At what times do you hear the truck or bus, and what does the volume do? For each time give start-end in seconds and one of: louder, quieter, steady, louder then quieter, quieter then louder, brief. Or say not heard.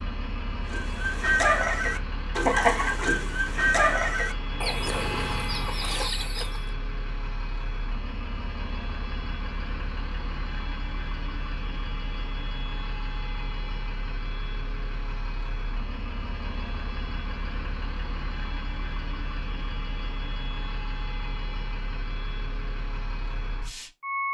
0.0-24.3 steady.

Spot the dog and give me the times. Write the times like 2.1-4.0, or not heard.
not heard.